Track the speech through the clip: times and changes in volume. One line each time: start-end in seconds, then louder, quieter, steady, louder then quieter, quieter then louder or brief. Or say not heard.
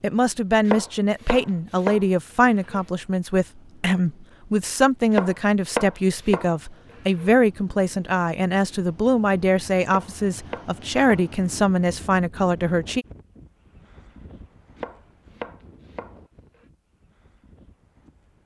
0.0-13.1 steady.